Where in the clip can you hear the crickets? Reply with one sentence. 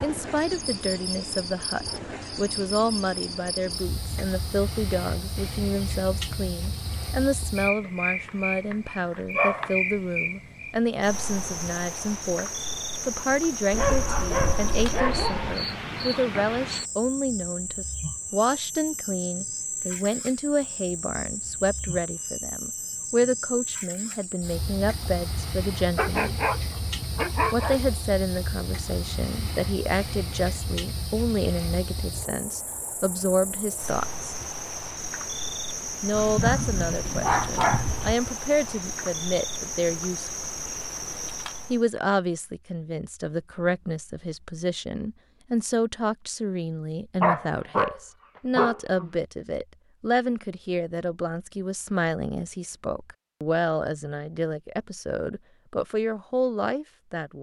The crickets can be heard from 0.0 to 41.9 s.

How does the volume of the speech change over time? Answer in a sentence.
The loudness of the speech stays about the same.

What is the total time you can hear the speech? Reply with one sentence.
The speech can be heard for 53 seconds in total.